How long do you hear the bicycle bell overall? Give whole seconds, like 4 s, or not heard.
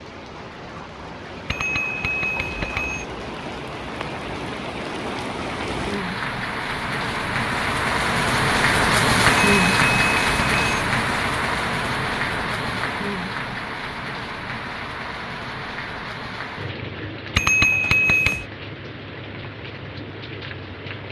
4 s.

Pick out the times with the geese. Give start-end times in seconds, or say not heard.
not heard.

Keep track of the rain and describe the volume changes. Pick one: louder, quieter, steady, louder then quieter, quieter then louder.
louder then quieter.